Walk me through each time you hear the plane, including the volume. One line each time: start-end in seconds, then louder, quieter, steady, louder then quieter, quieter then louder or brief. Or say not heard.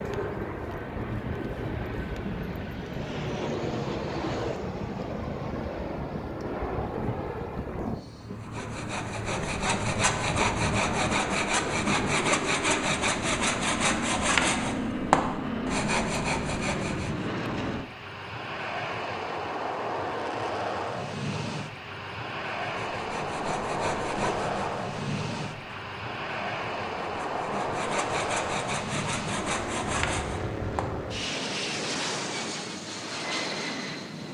0.0-34.2 steady.